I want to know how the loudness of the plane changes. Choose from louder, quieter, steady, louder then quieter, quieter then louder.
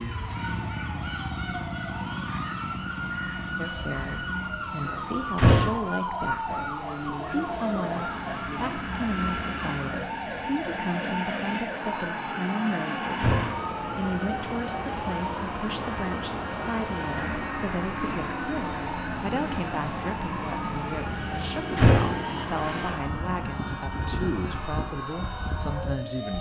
steady.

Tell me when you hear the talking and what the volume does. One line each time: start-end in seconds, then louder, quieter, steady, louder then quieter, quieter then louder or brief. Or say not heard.
3.5-26.3 steady.